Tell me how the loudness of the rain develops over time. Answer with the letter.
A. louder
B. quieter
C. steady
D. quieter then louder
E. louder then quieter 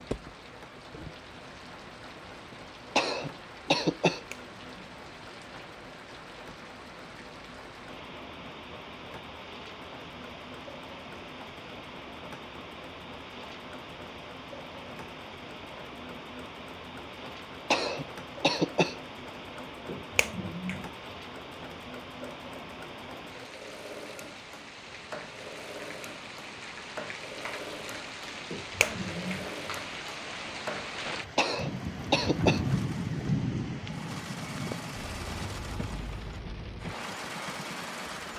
A.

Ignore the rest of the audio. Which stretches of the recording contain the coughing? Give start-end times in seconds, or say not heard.
3.0-4.2, 17.7-19.0, 31.4-32.6.